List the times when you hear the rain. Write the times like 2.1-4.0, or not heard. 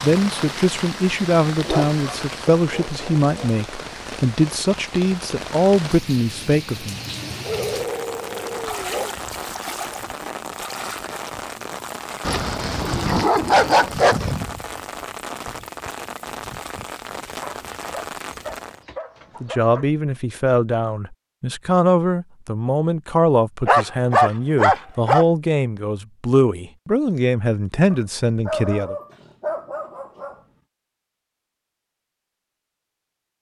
0.0-18.9.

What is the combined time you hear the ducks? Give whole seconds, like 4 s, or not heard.
not heard.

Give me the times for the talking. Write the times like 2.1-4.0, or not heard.
0.0-7.0, 19.4-28.9.